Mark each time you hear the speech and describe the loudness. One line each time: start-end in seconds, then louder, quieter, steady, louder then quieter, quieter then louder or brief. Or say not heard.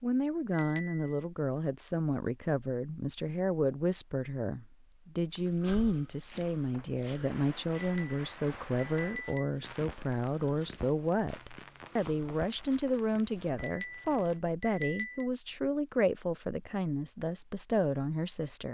0.0-18.6 steady.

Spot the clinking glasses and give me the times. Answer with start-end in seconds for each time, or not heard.
0.5-1.1, 7.8-9.5, 13.6-15.3.